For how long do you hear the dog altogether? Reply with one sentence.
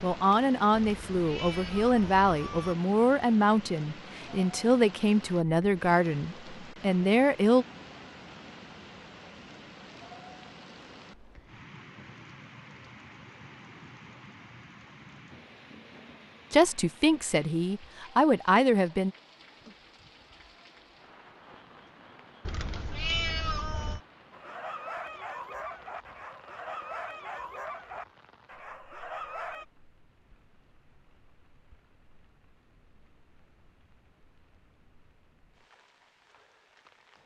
You can hear the dog for 5 seconds altogether.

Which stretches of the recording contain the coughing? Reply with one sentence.
You can't hear the coughing here.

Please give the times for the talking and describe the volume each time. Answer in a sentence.
You can hear the talking from 0.0 to 7.7 s, at a steady volume; and briefly from 16.5 to 19.1 s.